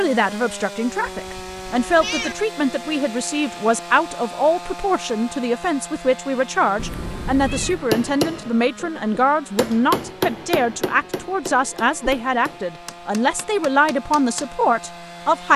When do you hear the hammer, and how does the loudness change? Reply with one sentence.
You can hear the hammer from 7.8 to 14.5 s, getting quieter.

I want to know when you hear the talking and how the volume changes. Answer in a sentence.
You can hear the talking from 0.0 to 15.5 s, at a steady volume.